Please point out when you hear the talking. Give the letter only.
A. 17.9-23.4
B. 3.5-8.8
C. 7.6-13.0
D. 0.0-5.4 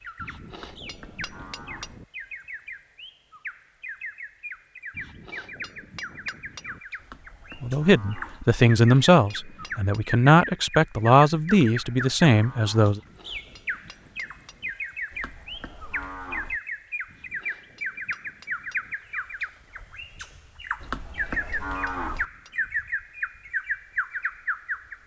C.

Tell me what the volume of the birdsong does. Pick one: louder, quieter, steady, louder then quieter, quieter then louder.
louder.